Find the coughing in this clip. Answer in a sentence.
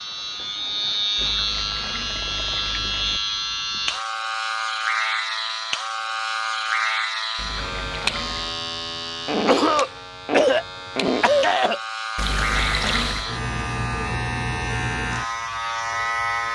You can hear the coughing from 9.2 to 11.8 s.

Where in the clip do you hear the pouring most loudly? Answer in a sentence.
The loudest moment of the pouring is at 13 seconds.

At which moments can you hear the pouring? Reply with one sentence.
The pouring can be heard from 1.1 to 3.2 s, from 7.3 to 8.6 s and from 12.2 to 13.3 s.